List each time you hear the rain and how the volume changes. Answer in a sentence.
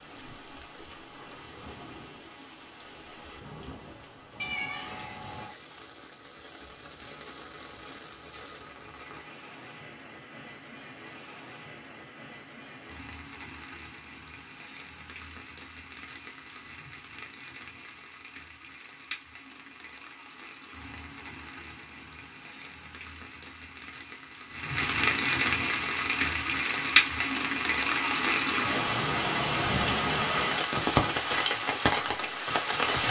The rain can be heard from 0.0 to 33.0 s, getting louder.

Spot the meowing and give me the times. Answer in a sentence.
You can hear the meowing from 4.3 to 5.5 s.